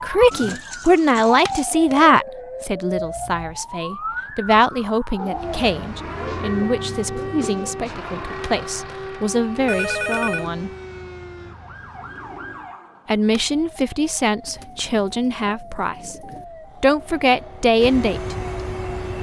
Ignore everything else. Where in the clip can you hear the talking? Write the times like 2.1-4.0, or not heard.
0.0-10.7, 13.1-16.1, 16.8-18.4.